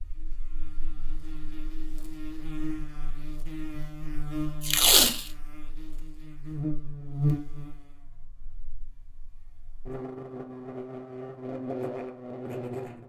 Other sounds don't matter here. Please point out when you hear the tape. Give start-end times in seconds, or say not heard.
4.6-5.3.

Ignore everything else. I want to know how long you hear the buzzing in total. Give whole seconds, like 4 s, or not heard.
13 s.